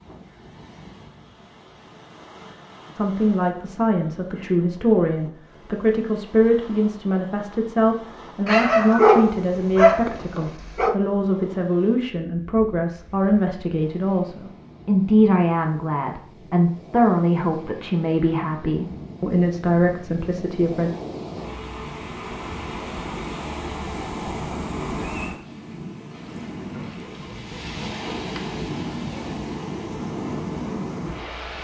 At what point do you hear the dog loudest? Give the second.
9 s.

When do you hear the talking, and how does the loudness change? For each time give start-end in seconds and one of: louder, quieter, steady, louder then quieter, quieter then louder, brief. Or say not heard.
3.0-20.9 steady.